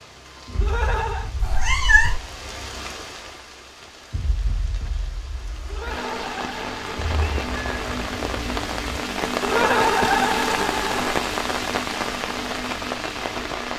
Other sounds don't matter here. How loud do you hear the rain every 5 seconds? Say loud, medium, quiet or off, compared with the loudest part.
quiet, loud, loud.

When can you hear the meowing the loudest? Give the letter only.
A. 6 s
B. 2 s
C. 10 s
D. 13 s
B.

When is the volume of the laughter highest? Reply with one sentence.
The volume of the laughter peaks at 10 seconds.